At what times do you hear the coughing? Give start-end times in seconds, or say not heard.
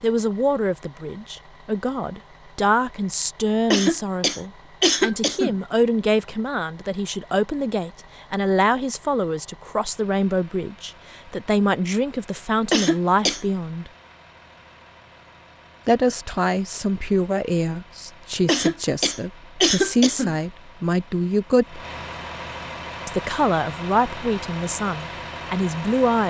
3.7-5.5, 12.7-13.4, 18.4-20.4.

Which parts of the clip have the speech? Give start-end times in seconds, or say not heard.
0.0-13.9, 15.8-21.8, 23.1-26.2.